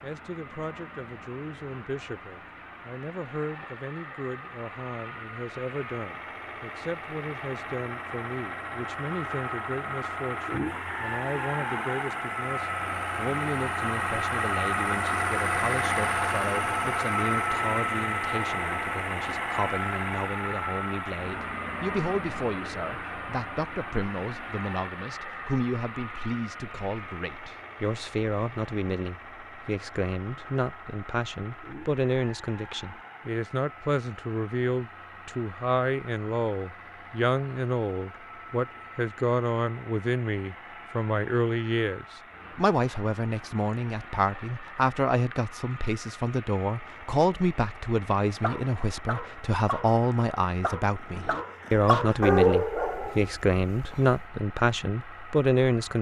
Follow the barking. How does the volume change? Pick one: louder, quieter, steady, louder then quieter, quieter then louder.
louder then quieter.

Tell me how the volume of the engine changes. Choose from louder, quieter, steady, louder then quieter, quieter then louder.
louder then quieter.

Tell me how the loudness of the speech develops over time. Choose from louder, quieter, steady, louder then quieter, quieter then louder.
louder.